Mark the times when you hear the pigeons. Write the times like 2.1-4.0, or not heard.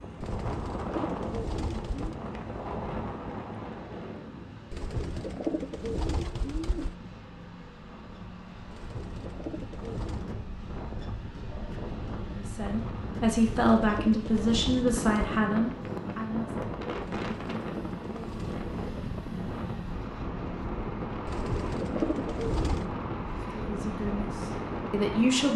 0.2-2.1, 4.7-7.0, 8.7-10.2, 13.2-15.4, 17.2-18.6, 21.2-22.9.